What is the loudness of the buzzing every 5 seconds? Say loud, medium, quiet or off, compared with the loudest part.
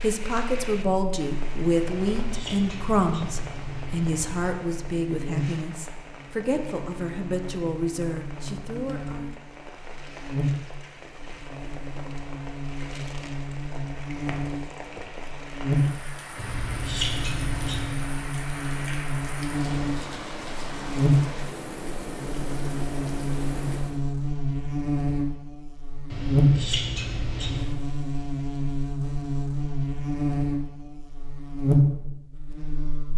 quiet, medium, medium, loud, loud, loud, loud.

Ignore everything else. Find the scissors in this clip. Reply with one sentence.
You can hear the scissors from 2.0 to 4.5 s, from 16.4 to 18.0 s and from 26.1 to 27.8 s.